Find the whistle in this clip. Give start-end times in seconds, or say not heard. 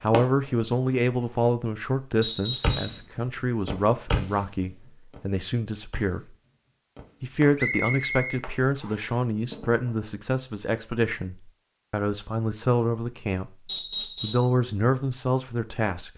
2.2-3.0, 7.5-9.1, 13.7-14.5.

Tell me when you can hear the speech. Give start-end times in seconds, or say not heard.
0.0-6.2, 7.2-13.5, 14.2-16.1.